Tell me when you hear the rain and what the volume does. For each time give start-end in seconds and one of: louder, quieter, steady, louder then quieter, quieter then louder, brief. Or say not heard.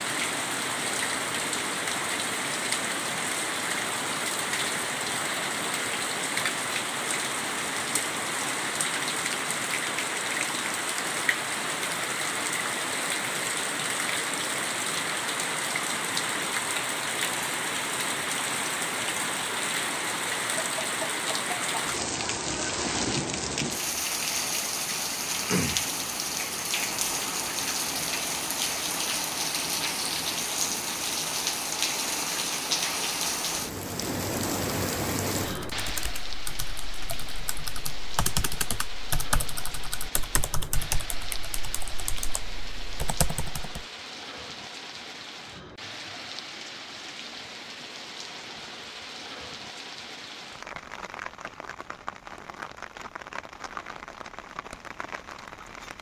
0.0-55.9 quieter.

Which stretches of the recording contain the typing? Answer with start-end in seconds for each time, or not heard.
35.5-43.9.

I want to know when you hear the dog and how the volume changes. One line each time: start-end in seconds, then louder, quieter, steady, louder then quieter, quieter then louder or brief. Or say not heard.
not heard.